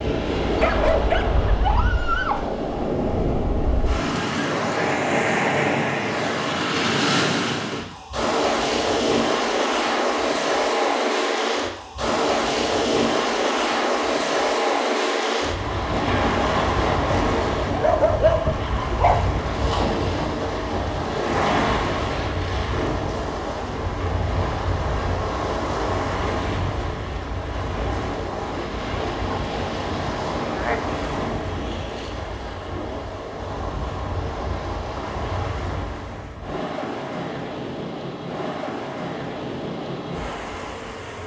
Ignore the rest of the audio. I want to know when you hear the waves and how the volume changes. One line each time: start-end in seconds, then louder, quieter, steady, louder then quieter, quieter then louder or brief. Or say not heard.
0.0-41.2 quieter.